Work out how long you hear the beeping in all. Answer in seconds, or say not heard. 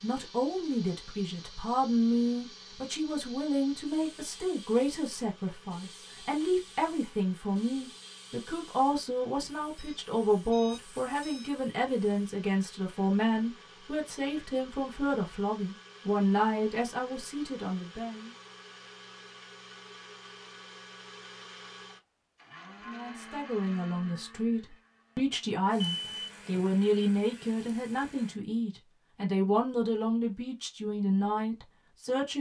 2 s.